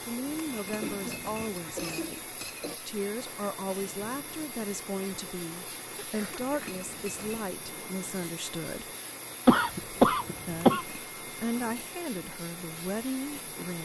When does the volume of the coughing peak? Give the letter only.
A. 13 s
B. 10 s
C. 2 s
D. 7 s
B.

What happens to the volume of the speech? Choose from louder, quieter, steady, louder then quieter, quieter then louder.
steady.